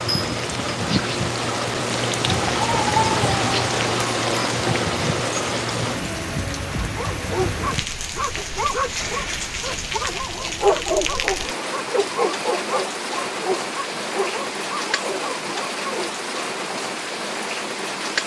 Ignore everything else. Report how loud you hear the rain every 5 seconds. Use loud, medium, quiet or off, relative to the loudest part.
loud, medium, medium, medium.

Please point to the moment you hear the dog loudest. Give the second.
11 s.